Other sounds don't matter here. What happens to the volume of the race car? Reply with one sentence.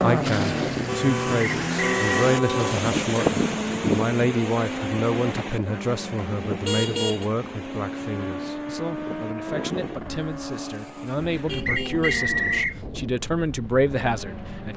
The loudness of the race car goes down.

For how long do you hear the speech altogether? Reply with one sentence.
The speech can be heard for 15 seconds in total.